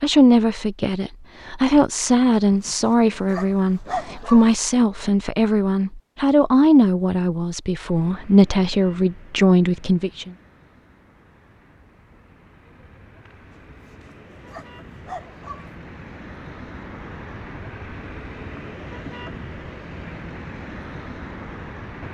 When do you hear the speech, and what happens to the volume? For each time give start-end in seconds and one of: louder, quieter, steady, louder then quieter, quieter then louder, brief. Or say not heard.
0.0-10.3 steady.